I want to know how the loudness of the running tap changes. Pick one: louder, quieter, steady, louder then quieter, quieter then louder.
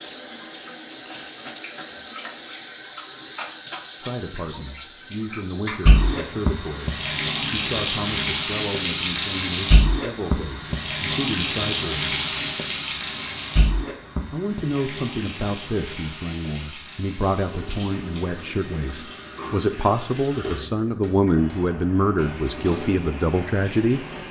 louder then quieter.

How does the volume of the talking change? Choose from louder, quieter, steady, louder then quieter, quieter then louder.
louder.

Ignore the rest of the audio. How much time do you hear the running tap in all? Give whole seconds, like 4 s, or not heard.
24 s.